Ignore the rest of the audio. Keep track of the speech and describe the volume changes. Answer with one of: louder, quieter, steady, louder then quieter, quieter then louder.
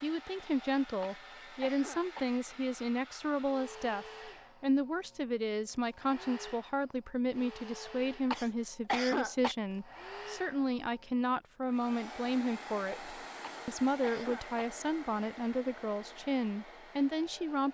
steady.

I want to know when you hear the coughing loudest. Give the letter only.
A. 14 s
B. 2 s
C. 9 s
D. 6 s
C.